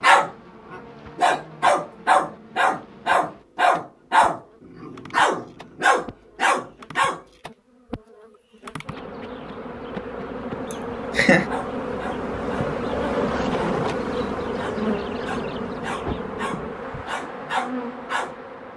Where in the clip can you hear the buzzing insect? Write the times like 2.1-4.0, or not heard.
0.0-18.7.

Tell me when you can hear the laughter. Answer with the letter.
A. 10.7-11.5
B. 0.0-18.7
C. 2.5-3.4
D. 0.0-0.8
A.